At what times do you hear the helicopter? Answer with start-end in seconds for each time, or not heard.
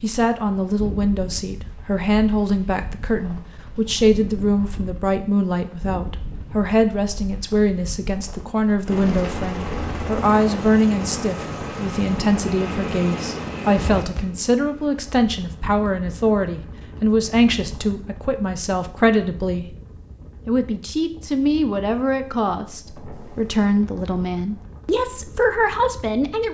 8.8-15.8.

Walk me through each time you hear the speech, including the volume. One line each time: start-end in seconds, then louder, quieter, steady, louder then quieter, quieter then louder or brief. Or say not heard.
0.0-19.6 steady
20.4-26.5 steady.